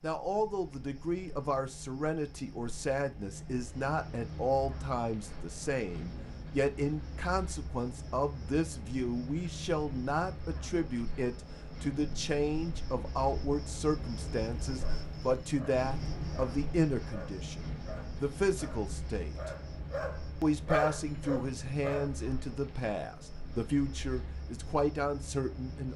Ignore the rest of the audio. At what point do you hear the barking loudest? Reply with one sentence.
The volume of the barking peaks at 21 seconds.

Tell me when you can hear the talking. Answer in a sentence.
The talking can be heard from 0.0 to 19.5 s and from 20.4 to 25.9 s.